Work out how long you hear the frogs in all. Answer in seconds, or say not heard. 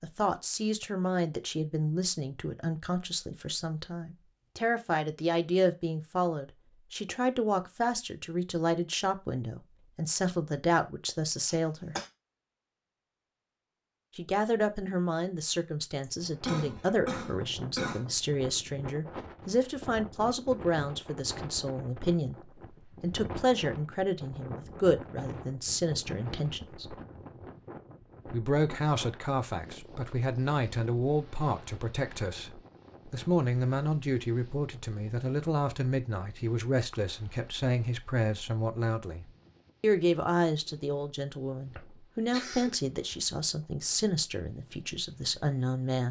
not heard.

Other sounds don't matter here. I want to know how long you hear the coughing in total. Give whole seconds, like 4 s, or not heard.
4 s.